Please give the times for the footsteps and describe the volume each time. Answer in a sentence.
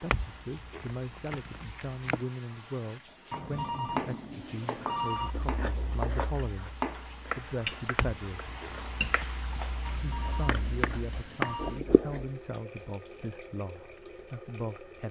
You can't hear the footsteps here.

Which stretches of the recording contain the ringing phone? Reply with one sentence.
The ringing phone can be heard from 3.3 to 5.3 s and from 9.8 to 11.8 s.